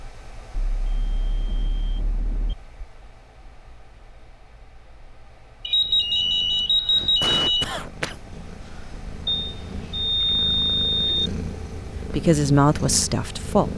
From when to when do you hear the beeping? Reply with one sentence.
You can hear the beeping from 0.5 to 2.5 s, from 5.7 to 7.7 s and from 9.2 to 11.3 s.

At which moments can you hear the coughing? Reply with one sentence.
The coughing can be heard from 6.5 to 9.0 s.